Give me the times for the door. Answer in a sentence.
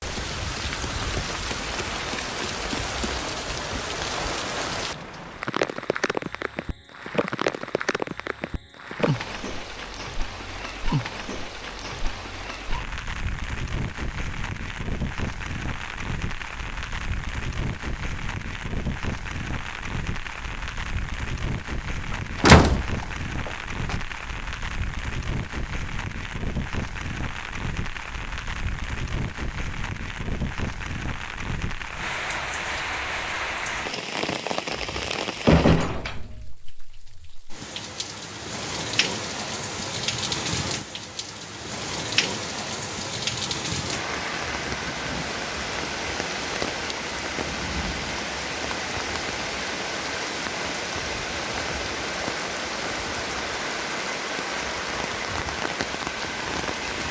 You can hear the door from 22.1 to 23.9 s and from 34.7 to 36.5 s.